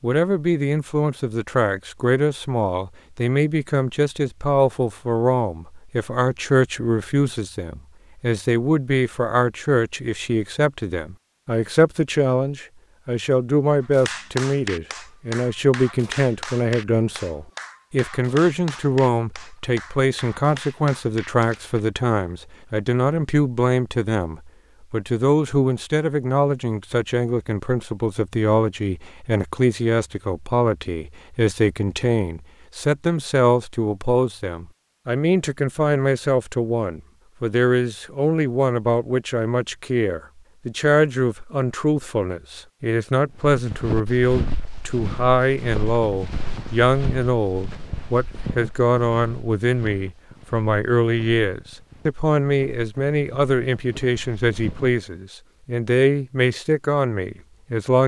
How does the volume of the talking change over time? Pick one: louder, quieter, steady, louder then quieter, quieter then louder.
steady.